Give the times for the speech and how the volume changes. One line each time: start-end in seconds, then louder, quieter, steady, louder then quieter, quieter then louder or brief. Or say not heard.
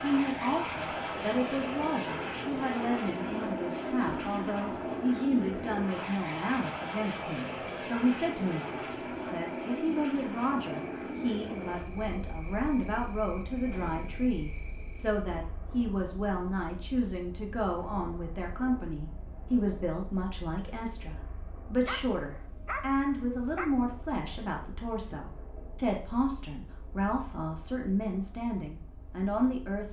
0.0-29.8 steady.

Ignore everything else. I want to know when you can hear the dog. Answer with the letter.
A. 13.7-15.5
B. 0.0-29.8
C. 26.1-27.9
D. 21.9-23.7
D.